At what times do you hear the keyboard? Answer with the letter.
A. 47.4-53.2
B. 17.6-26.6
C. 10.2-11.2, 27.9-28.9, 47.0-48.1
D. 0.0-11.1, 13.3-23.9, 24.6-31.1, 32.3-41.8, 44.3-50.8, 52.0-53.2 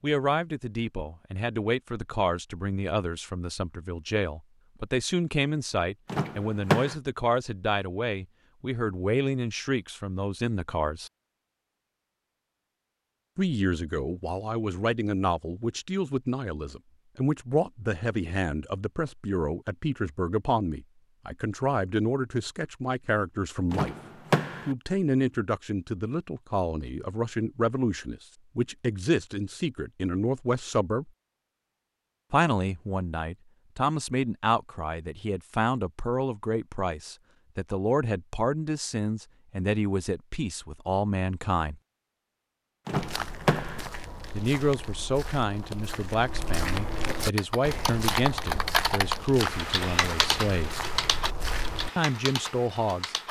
A.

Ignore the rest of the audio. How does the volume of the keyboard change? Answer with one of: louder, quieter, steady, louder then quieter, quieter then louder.
quieter.